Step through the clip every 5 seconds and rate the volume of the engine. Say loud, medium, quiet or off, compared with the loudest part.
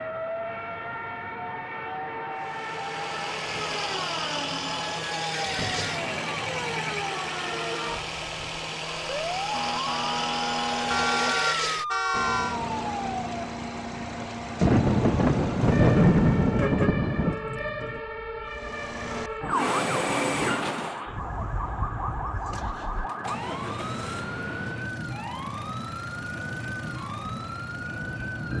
loud, loud, loud, loud, loud, medium.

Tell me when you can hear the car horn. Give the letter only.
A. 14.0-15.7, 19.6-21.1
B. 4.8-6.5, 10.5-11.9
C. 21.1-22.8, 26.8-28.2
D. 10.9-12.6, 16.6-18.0
D.